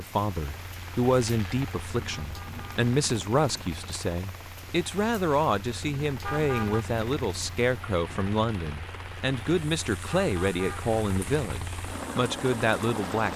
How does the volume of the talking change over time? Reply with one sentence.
The loudness of the talking stays about the same.